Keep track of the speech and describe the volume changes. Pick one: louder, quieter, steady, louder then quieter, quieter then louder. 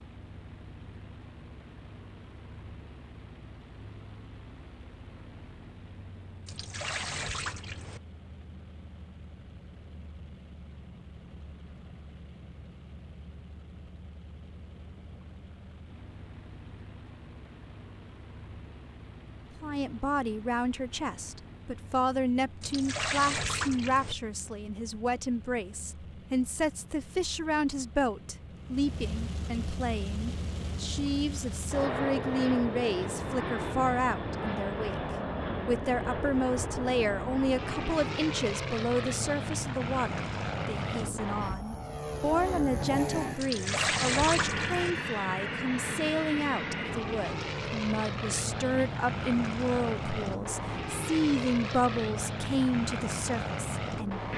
steady.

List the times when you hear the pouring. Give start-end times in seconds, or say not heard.
6.5-8.0, 22.6-24.1, 43.4-45.0.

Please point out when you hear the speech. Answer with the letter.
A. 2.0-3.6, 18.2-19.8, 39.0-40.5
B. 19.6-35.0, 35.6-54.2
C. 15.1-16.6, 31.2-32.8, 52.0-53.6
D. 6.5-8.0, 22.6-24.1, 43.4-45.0
B.